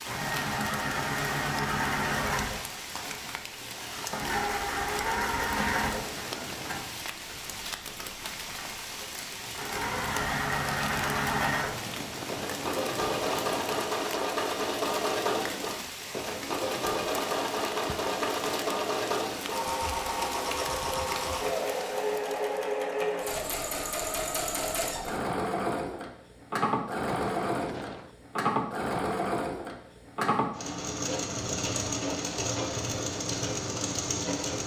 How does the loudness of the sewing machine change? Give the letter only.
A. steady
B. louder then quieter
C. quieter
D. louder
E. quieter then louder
A.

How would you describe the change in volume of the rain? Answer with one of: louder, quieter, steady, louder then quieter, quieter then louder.
steady.